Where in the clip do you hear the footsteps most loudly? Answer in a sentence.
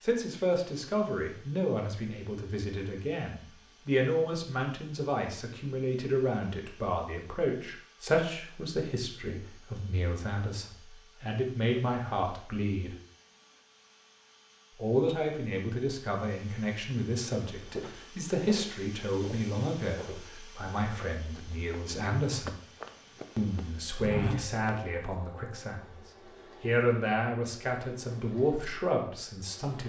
The volume of the footsteps peaks at 24 seconds.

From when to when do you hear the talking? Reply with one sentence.
The talking can be heard from 0.0 to 12.9 s, from 14.8 to 22.6 s, from 23.4 to 26.0 s and from 26.6 to 29.8 s.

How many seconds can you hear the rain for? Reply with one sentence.
You can't hear the rain here.